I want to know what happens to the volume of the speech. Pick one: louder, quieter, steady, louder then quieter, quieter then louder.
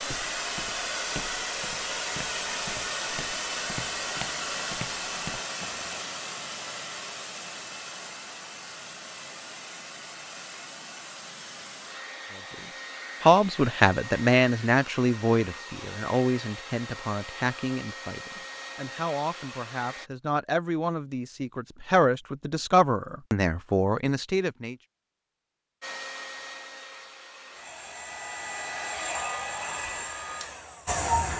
quieter then louder.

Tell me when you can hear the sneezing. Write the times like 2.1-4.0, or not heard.
not heard.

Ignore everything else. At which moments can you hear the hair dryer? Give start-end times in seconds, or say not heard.
0.0-20.1, 25.8-31.3.